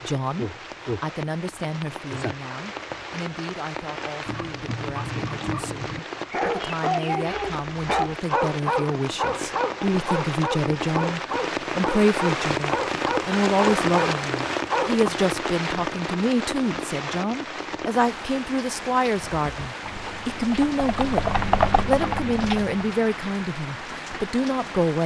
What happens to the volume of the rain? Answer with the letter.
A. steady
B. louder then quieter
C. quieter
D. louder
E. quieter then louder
B.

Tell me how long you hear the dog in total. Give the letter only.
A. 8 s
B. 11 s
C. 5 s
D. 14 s
B.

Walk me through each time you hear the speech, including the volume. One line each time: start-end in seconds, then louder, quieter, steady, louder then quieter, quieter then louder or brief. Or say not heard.
0.0-25.0 louder.